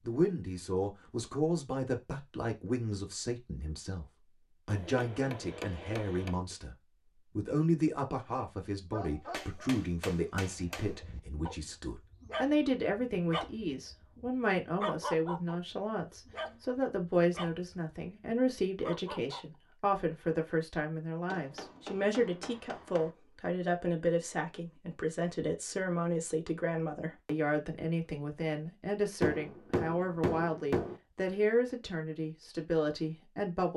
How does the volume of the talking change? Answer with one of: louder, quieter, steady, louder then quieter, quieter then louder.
steady.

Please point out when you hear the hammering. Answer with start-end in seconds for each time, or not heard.
4.7-6.3, 9.3-10.9, 21.2-23.1, 29.2-30.9.